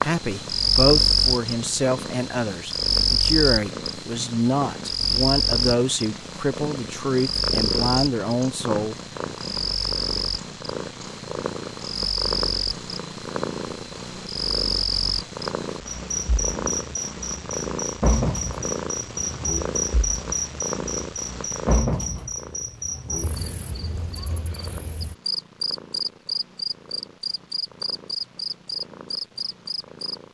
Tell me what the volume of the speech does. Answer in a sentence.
The loudness of the speech stays about the same.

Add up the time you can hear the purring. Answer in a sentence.
The purring can be heard for 30 seconds in total.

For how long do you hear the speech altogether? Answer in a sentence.
You can hear the speech for 9 seconds altogether.